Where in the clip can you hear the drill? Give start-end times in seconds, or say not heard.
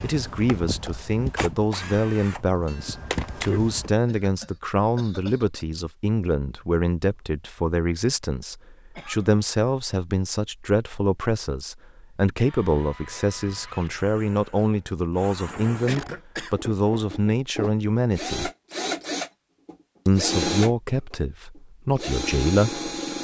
0.0-3.9, 12.4-23.1.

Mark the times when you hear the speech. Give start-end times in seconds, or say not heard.
0.0-18.5, 20.1-22.8.